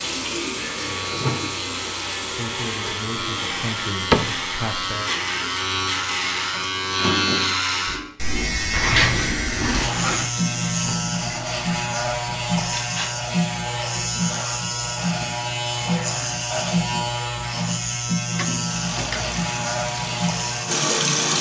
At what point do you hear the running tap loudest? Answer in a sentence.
The loudest moment of the running tap is at 21 seconds.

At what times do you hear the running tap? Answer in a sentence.
The running tap can be heard from 0.0 to 13.1 s and from 18.6 to 21.3 s.